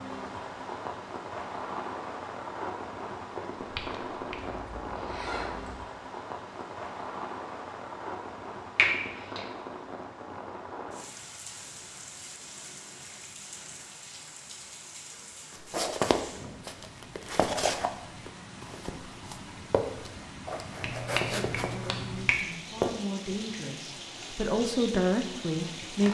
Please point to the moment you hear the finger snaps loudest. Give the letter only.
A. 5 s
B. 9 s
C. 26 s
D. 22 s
B.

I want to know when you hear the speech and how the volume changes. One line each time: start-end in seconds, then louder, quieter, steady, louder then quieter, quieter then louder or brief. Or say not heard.
21.2-26.1 louder.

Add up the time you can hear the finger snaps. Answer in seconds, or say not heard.
3 s.